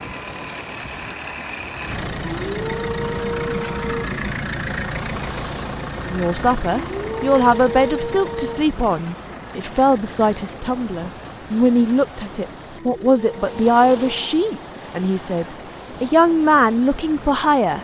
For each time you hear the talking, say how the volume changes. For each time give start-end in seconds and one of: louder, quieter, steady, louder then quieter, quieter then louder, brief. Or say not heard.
6.0-17.7 steady.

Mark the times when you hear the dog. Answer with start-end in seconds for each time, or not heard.
2.2-4.1, 6.7-8.7, 12.8-14.3.